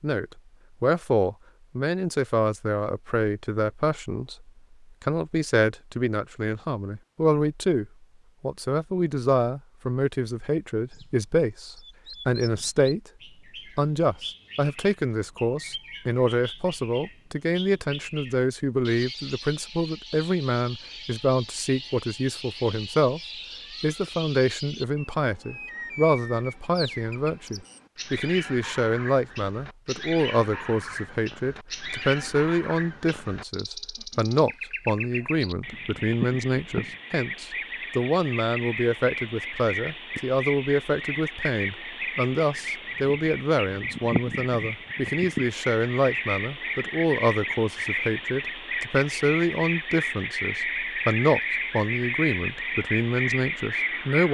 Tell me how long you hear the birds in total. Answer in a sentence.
The birds can be heard for 43 seconds in total.